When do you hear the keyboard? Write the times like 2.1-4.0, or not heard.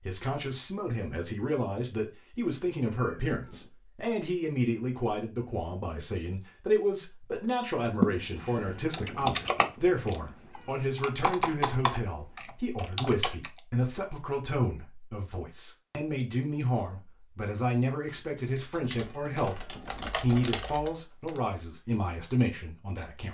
8.0-13.5, 18.5-21.4.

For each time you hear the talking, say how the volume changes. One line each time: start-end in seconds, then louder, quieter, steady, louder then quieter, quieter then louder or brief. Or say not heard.
0.1-23.2 steady.